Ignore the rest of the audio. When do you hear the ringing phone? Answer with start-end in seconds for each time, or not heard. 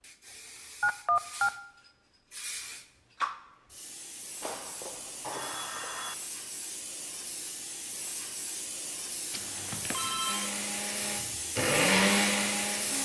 0.8-1.5, 4.4-6.2, 9.3-10.5.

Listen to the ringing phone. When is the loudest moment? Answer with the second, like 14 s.
1 s.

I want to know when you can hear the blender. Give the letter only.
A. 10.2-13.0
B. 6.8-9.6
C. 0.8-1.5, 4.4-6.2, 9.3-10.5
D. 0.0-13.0
A.